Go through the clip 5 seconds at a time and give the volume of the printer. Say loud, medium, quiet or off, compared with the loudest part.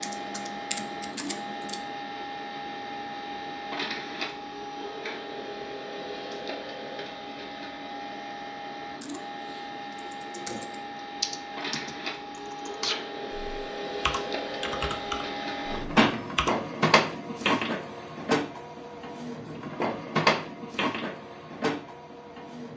medium, medium, medium, loud, loud.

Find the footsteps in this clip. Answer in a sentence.
The footsteps can't be heard in this clip.